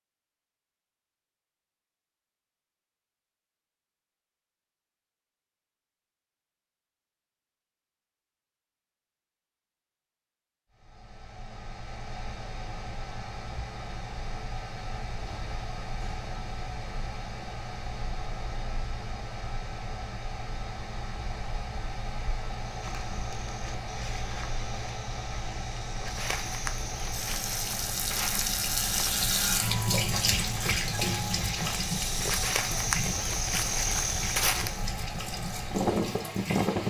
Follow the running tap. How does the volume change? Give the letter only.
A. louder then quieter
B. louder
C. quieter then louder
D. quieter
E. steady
D.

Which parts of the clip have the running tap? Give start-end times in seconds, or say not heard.
27.1-36.8.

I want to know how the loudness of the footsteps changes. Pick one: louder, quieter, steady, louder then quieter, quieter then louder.
louder.